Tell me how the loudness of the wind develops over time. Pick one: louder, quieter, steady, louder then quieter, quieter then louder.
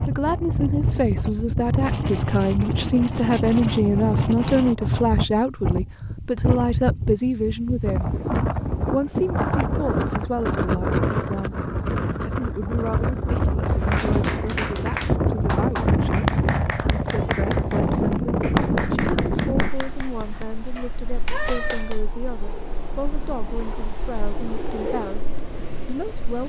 quieter.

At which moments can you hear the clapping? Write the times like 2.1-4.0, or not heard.
13.7-22.0.